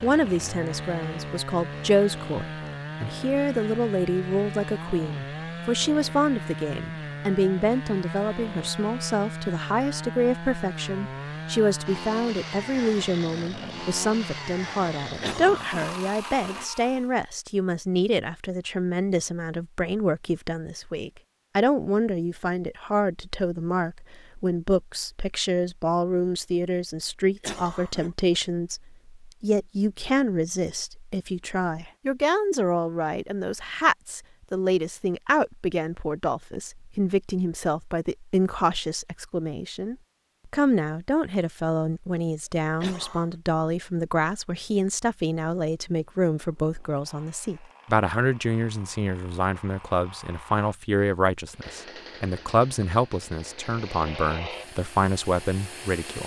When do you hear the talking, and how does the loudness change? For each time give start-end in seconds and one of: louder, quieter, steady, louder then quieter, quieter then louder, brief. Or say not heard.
0.0-56.2 steady.